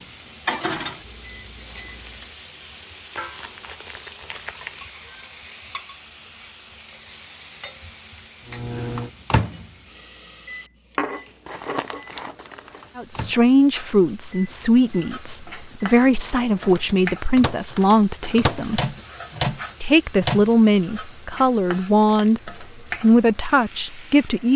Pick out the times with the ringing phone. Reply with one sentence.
You can't hear the ringing phone here.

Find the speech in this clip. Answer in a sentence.
The speech can be heard from 12.9 to 18.8 s and from 19.8 to 24.5 s.